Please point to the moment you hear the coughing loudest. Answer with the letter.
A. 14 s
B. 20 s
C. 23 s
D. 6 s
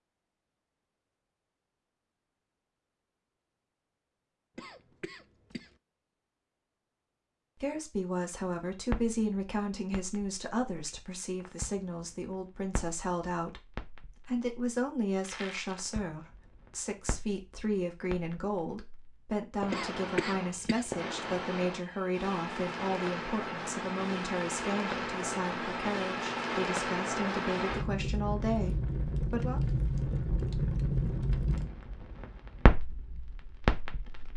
B.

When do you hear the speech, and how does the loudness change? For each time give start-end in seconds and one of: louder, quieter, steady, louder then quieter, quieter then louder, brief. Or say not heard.
7.5-29.6 steady.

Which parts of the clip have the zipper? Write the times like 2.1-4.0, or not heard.
not heard.